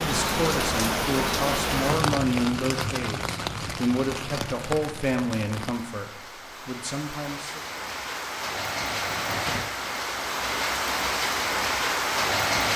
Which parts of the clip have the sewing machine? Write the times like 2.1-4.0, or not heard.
not heard.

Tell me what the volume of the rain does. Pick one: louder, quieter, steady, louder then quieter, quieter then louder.
quieter then louder.